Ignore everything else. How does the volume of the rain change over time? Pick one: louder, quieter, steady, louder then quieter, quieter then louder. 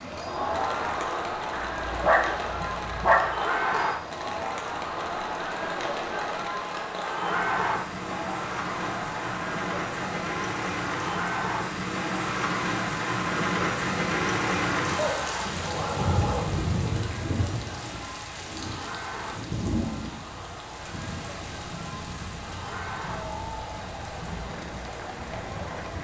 louder then quieter.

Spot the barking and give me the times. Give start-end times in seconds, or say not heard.
1.6-3.3, 14.9-16.6.